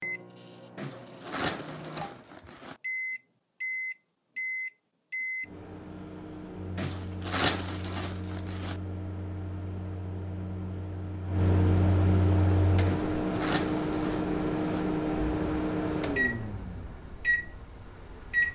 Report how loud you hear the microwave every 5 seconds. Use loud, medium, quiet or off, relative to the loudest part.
medium, medium, loud, loud.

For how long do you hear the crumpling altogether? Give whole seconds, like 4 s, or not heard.
6 s.